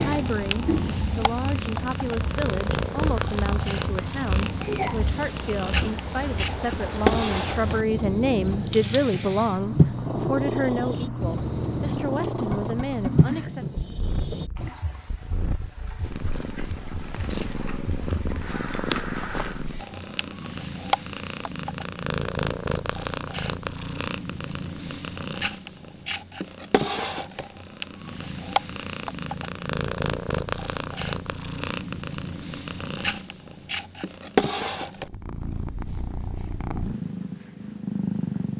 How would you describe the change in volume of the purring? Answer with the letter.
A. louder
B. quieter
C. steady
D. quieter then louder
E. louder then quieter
C.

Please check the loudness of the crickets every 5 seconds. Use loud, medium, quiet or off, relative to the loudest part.
loud, loud, loud, loud, off, off, off, off.